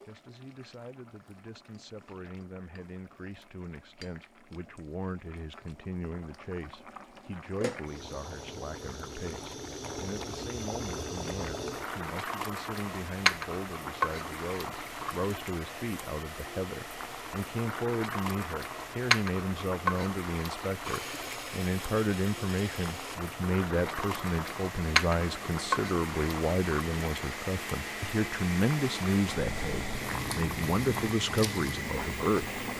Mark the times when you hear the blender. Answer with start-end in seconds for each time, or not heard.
20.8-32.7.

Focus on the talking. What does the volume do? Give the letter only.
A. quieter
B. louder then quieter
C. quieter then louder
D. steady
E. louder
E.